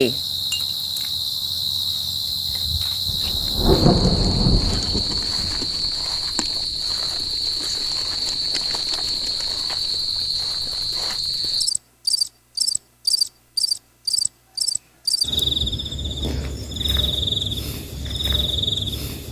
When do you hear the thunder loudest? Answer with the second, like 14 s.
4 s.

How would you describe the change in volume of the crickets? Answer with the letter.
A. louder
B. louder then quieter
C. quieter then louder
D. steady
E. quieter
D.